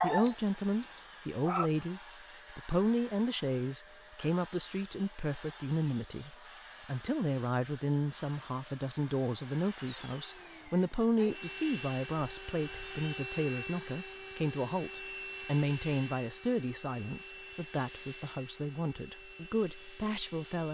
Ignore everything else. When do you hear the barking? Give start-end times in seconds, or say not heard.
0.0-1.7.